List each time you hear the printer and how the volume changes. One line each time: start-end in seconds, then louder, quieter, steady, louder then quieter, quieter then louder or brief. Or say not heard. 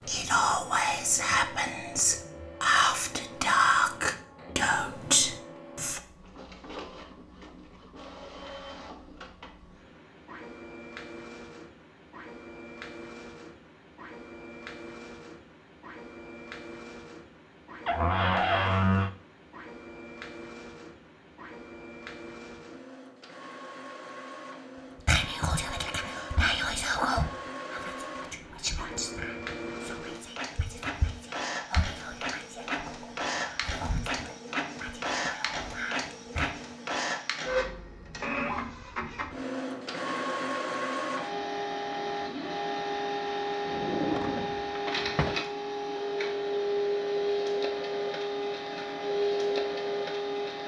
0.0-50.6 louder.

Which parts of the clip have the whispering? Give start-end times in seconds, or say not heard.
0.1-6.0, 25.1-36.8.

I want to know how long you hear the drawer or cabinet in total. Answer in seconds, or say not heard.
3 s.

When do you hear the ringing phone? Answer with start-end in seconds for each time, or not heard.
not heard.